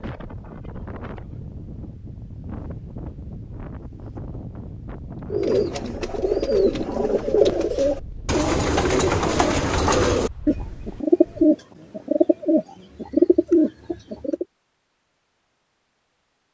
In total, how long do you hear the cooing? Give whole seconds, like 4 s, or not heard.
9 s.